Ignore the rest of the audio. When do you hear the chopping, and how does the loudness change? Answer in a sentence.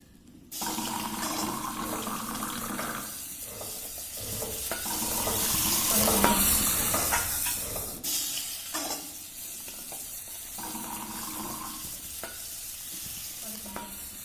You can hear the chopping from 1.7 to 8.0 s, getting louder then quieter.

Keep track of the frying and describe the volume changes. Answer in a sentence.
The loudness of the frying goes up, then down.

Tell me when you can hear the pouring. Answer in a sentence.
You can hear the pouring from 0.6 to 3.1 s, from 4.8 to 7.1 s and from 10.6 to 11.8 s.